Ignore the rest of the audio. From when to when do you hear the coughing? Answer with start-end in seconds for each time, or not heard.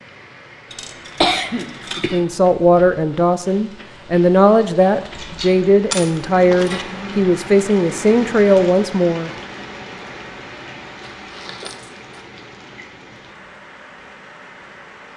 1.2-2.2.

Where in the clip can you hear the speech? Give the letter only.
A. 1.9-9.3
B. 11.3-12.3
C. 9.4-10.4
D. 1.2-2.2
A.